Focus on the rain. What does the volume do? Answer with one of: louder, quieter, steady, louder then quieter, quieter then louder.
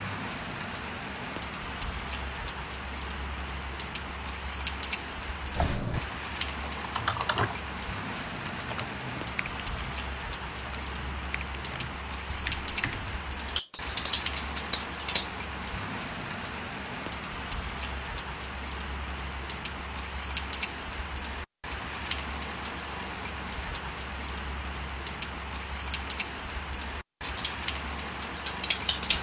steady.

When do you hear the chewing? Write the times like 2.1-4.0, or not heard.
not heard.